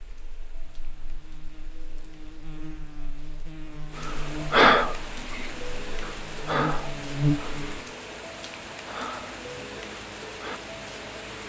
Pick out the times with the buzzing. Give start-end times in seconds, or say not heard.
0.0-7.9.